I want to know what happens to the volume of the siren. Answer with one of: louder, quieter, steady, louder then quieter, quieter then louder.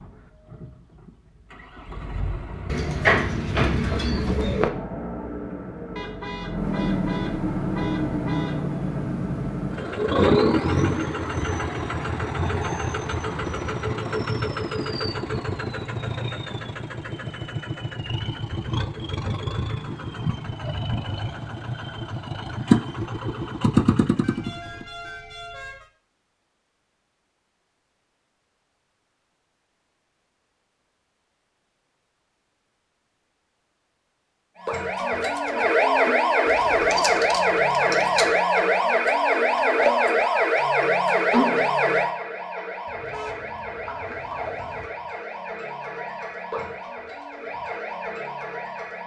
quieter.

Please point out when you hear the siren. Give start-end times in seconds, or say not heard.
34.6-49.0.